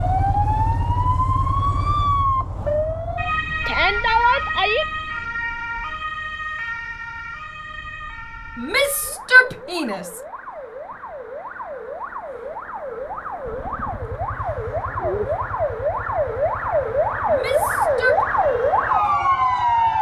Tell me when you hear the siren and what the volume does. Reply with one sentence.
You can hear the siren from 0.0 to 19.9 s, getting quieter then louder.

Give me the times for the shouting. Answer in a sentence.
You can hear the shouting from 3.6 to 4.8 s, from 8.6 to 10.1 s and from 17.2 to 18.2 s.